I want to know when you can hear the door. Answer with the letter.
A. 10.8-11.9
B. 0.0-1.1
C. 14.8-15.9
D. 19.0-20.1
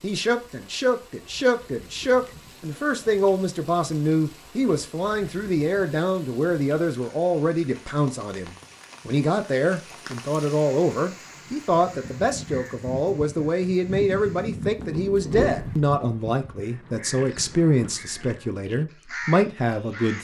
C.